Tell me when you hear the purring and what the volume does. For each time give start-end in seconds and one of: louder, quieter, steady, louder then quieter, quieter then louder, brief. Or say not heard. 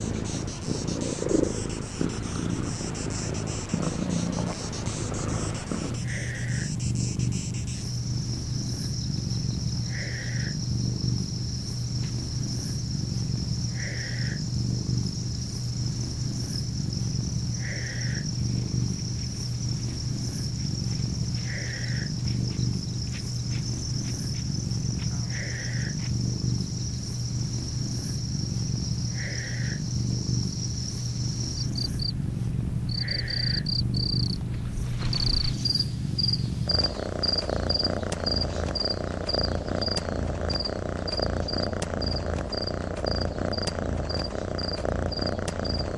0.0-45.9 steady.